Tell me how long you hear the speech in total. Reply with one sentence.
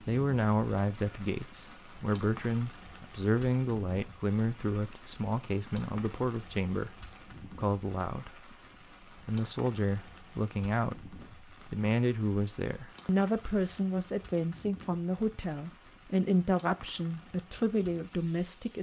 You can hear the speech for 18 seconds altogether.